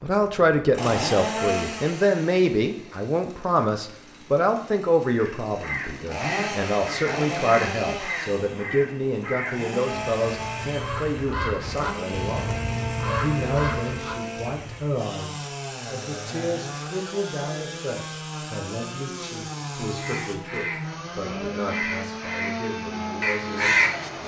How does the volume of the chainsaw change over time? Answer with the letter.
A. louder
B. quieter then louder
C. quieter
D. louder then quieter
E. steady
E.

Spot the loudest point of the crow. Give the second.
24 s.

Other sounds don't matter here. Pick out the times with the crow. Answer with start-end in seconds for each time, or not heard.
5.1-14.9, 19.9-24.2.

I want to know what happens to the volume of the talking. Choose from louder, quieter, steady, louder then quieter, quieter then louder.
quieter.